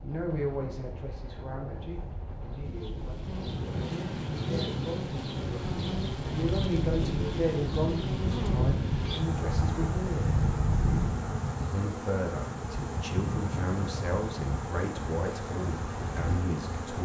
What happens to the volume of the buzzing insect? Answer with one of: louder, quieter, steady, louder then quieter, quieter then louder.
steady.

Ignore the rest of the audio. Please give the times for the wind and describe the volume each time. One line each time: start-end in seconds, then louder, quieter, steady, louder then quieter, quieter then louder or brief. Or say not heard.
0.0-11.1 louder.